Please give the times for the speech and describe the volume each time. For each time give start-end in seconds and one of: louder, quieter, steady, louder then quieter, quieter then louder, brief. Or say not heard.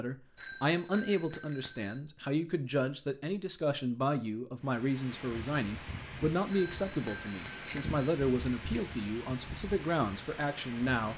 0.0-11.1 steady.